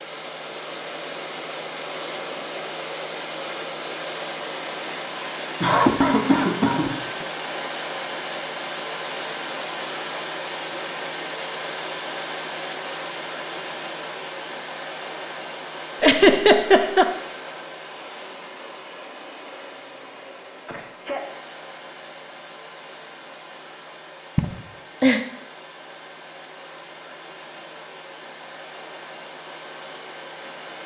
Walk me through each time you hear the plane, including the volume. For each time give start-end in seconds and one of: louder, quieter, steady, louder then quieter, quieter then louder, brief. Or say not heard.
0.0-30.8 quieter.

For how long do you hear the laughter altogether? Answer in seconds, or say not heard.
3 s.